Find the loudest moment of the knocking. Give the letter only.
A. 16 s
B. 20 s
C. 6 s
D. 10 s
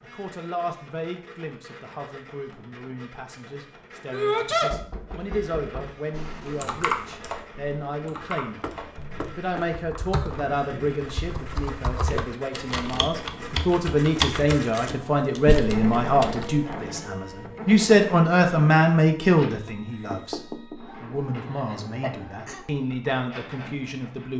B.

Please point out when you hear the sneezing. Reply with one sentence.
The sneezing can be heard from 4.1 to 4.8 s and from 21.5 to 22.6 s.